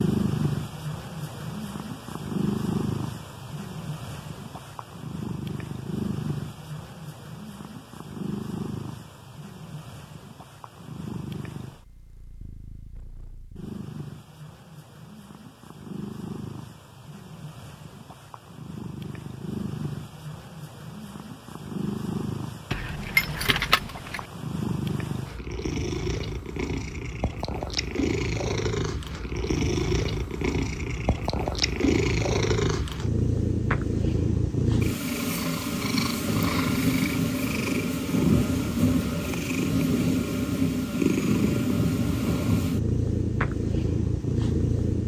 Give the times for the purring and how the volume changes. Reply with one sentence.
The purring can be heard from 0.0 to 45.0 s, getting quieter then louder.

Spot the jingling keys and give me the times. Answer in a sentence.
You can hear the jingling keys from 22.7 to 24.2 s.